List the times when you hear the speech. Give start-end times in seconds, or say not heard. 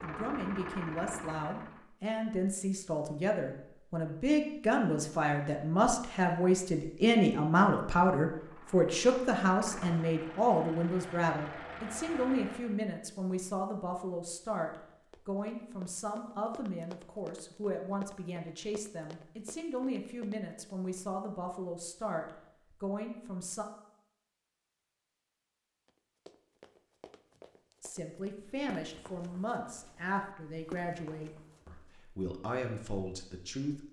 0.0-23.6, 27.8-33.8.